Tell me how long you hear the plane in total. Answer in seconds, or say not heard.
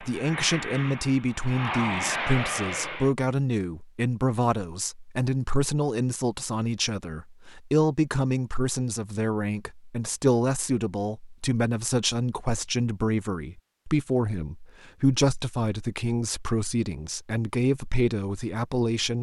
3 s.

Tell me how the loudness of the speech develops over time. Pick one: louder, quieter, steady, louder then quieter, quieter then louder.
steady.